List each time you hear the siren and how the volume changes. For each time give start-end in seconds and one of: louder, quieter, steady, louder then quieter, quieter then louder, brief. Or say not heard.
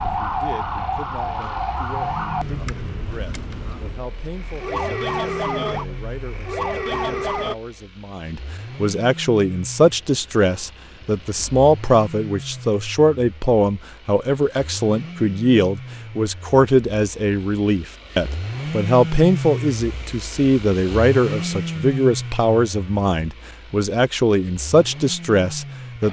0.0-7.5 quieter then louder.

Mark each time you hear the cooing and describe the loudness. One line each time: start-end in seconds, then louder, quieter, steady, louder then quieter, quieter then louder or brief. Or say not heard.
not heard.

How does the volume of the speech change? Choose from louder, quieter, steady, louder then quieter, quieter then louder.
louder.